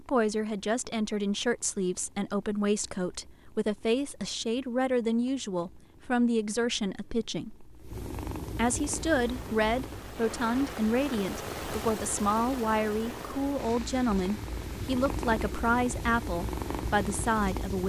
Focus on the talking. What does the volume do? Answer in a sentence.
The loudness of the talking stays about the same.